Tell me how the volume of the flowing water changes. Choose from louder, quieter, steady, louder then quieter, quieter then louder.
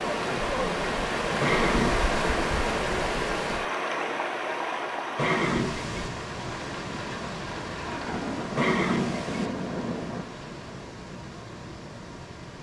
quieter.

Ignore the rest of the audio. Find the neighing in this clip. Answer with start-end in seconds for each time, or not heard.
1.4-2.1, 5.2-6.1, 8.6-9.5.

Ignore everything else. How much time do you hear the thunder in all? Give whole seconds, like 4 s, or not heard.
4 s.